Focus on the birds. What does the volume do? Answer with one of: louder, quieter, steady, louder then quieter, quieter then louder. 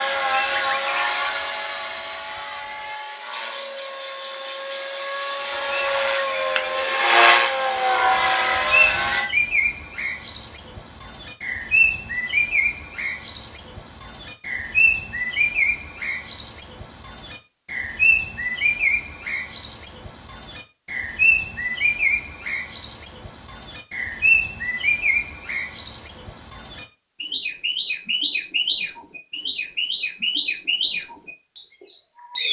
louder.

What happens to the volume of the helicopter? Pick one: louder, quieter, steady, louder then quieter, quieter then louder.
quieter then louder.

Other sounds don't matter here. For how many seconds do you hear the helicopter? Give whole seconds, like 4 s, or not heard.
9 s.